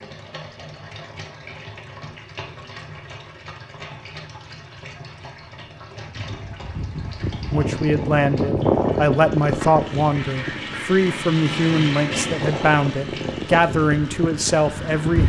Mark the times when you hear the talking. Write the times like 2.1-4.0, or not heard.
7.5-15.2.